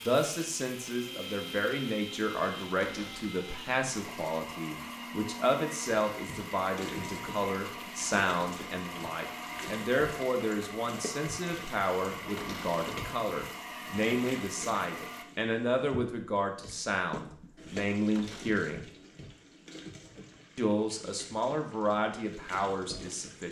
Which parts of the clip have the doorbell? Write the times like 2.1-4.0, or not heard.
not heard.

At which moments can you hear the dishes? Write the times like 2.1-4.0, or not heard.
not heard.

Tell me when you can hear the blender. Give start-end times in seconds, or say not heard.
0.0-15.2.